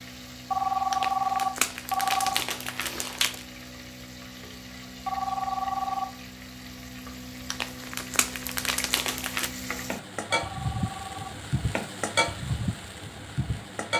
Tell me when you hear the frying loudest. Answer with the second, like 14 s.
12 s.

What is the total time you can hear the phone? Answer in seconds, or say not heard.
4 s.